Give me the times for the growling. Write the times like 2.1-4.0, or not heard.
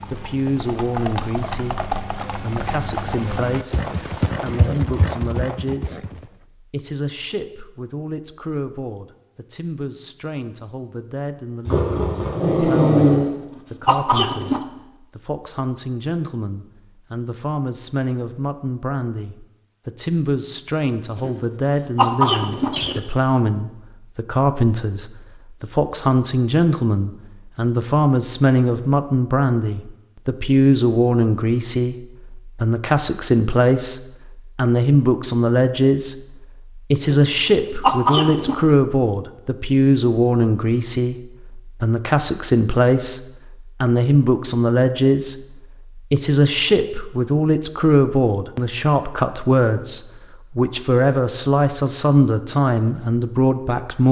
11.7-13.3.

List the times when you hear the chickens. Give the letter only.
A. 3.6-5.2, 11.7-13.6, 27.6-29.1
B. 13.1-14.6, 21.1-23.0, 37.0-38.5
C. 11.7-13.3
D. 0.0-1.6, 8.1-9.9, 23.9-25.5
B.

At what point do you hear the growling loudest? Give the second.
13 s.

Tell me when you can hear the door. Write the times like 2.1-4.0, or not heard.
not heard.